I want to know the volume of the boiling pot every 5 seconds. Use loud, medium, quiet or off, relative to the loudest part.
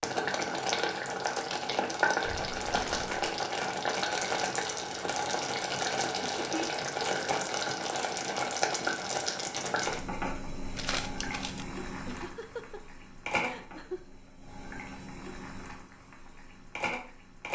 loud, loud, medium, medium.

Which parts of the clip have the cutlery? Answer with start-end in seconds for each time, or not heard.
not heard.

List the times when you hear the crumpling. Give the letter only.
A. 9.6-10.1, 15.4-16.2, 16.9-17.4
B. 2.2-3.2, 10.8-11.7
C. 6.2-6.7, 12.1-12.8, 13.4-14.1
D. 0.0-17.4
B.